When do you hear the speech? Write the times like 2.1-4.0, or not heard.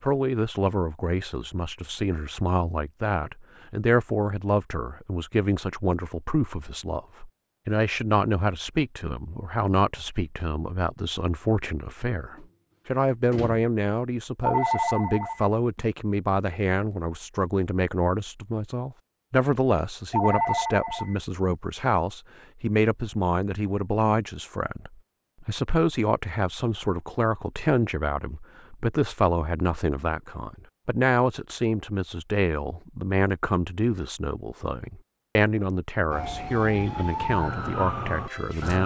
0.0-38.8.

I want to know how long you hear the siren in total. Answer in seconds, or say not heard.
3 s.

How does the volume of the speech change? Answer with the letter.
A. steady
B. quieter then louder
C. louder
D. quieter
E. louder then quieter
A.